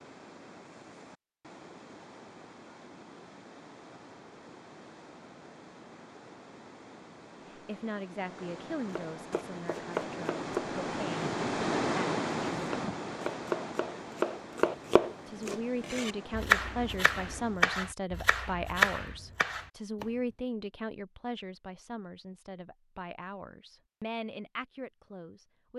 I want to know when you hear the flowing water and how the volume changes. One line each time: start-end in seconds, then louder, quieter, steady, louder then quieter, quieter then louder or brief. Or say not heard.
0.0-17.7 louder then quieter.